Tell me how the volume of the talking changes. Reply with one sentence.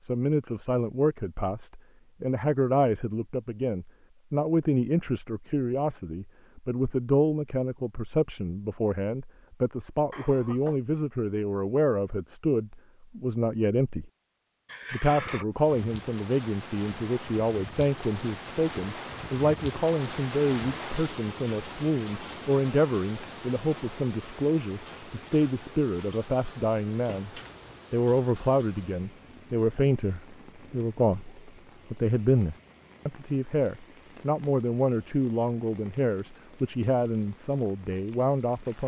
The loudness of the talking stays about the same.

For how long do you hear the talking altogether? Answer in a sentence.
You can hear the talking for 38 seconds altogether.